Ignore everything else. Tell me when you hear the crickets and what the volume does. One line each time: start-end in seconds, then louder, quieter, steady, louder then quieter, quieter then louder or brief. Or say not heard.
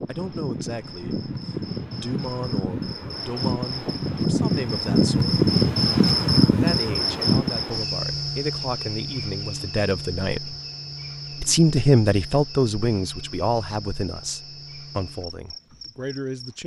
0.0-16.6 louder then quieter.